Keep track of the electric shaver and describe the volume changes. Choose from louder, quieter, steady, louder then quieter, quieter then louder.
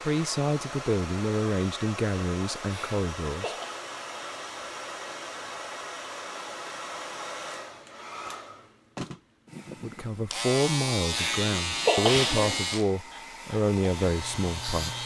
quieter then louder.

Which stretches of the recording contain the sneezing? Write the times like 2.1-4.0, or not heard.
2.7-3.8, 11.1-12.7.